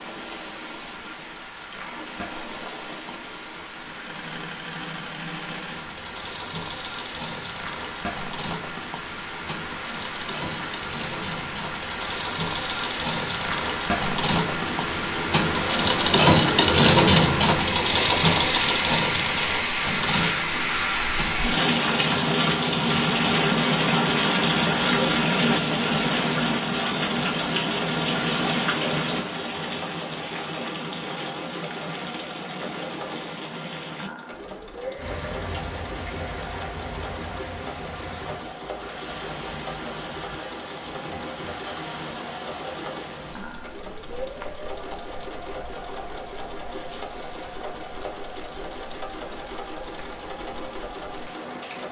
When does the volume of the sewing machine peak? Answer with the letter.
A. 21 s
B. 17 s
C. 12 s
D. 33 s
B.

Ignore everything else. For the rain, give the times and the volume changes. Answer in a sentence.
You can hear the rain from 0.0 to 51.8 s, getting louder then quieter.